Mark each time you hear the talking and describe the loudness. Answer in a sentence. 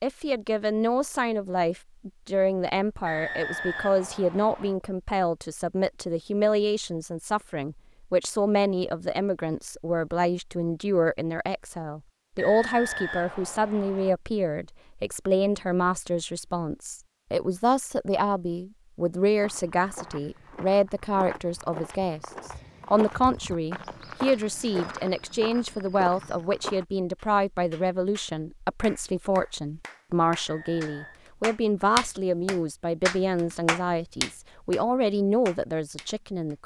The talking can be heard from 0.0 to 36.6 s, at a steady volume.